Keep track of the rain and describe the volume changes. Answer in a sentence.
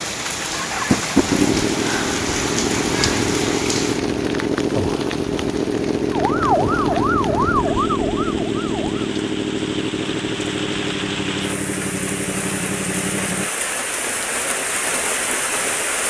The loudness of the rain goes down, then up.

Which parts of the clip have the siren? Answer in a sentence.
The siren can be heard from 6.1 to 9.1 s.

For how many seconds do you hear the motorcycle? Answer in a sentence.
You can hear the motorcycle for 13 seconds altogether.